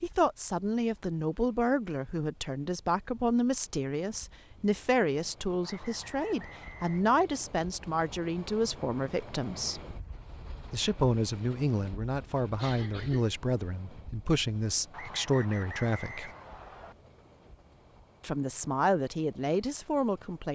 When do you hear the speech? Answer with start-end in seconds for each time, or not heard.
0.0-9.8, 10.7-16.3, 18.2-20.5.